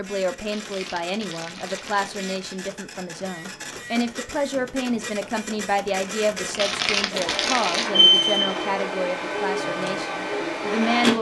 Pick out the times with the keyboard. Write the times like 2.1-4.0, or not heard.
not heard.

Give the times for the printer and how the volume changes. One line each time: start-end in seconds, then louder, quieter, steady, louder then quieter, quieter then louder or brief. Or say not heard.
0.0-11.1 louder.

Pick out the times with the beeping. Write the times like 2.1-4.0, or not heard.
7.9-8.6.